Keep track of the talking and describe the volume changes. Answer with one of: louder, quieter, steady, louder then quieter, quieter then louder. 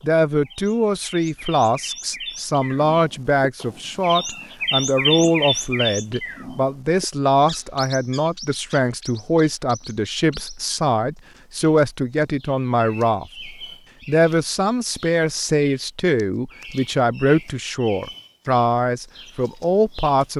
steady.